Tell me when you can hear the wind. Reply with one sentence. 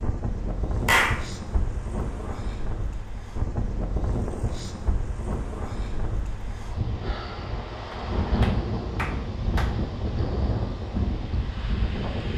You can hear the wind from 0.0 to 12.3 s.